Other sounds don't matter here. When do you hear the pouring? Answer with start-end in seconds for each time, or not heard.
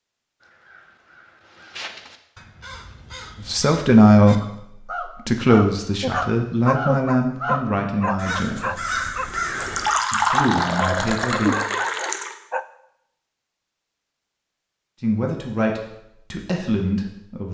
9.6-12.3.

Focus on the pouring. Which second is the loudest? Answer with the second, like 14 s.
10 s.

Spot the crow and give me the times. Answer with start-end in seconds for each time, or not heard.
0.4-9.9.